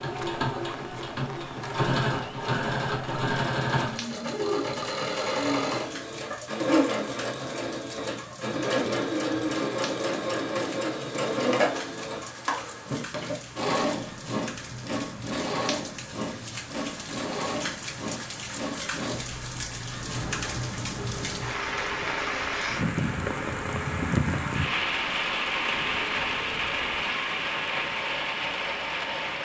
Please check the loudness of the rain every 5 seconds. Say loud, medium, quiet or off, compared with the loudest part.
quiet, quiet, quiet, medium, loud, loud.